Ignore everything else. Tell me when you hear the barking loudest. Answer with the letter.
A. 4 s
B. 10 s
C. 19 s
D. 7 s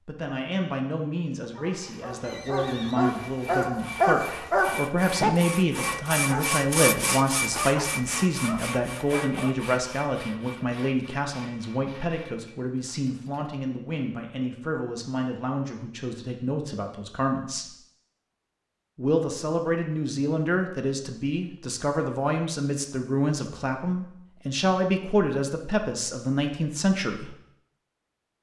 A.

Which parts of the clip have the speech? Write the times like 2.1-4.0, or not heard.
0.1-17.7, 18.9-27.4.